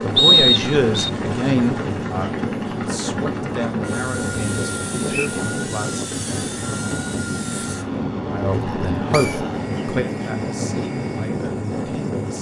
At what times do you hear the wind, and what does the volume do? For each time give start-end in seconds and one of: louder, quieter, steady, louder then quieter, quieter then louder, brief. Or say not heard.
0.0-12.3 steady.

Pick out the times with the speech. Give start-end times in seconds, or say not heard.
0.0-6.0, 8.3-12.3.